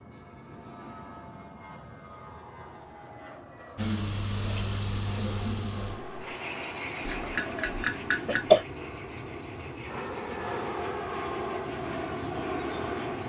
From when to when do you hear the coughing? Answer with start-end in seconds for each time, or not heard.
7.0-8.7.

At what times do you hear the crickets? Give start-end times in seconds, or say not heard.
3.8-13.2.